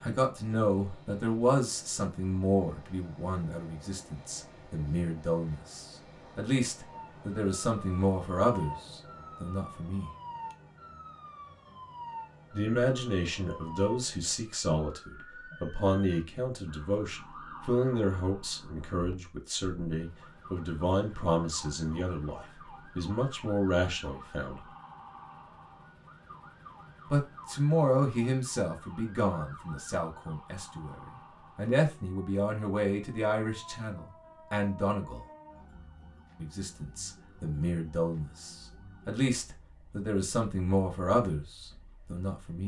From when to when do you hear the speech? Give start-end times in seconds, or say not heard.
0.0-10.1, 12.5-24.6, 27.1-35.2, 36.4-42.6.